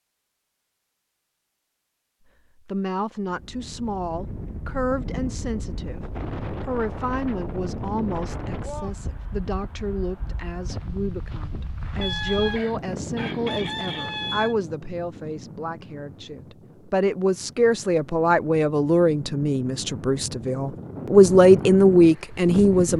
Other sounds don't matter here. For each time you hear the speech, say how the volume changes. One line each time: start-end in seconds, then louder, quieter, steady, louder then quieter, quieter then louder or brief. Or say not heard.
2.6-22.9 louder.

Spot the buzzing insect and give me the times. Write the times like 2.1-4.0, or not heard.
not heard.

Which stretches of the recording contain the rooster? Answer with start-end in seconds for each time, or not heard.
12.0-14.6.